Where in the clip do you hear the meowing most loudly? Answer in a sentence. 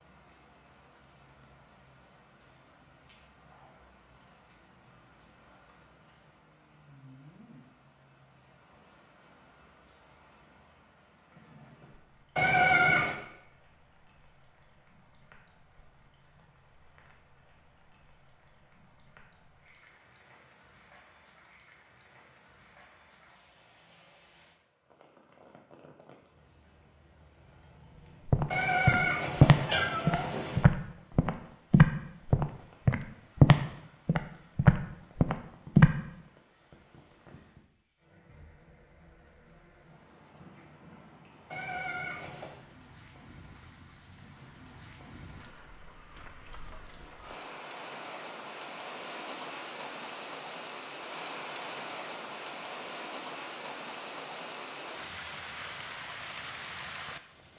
The loudest moment of the meowing is at 13 seconds.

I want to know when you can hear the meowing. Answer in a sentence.
You can hear the meowing from 12.3 to 13.2 s, from 28.5 to 30.6 s and from 41.5 to 42.6 s.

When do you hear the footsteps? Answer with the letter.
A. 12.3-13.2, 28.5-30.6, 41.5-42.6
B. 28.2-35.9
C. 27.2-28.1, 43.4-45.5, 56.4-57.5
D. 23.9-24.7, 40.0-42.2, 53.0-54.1
B.